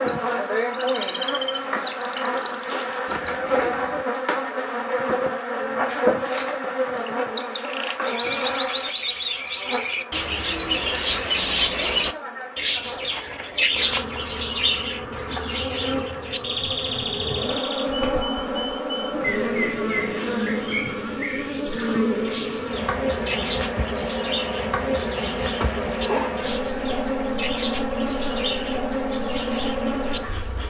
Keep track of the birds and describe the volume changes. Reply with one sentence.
The loudness of the birds goes up, then down.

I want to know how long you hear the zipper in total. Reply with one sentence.
You can hear the zipper for 2 seconds altogether.